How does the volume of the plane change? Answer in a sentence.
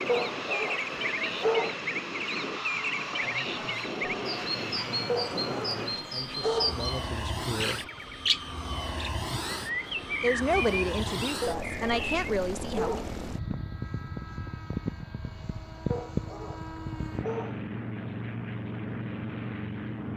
The loudness of the plane stays about the same.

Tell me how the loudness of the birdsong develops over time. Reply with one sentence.
The loudness of the birdsong stays about the same.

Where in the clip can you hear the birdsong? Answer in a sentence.
The birdsong can be heard from 0.0 to 12.3 s.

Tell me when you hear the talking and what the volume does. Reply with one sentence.
The talking can be heard from 3.2 to 7.9 s, getting louder; and briefly from 10.2 to 13.0 s.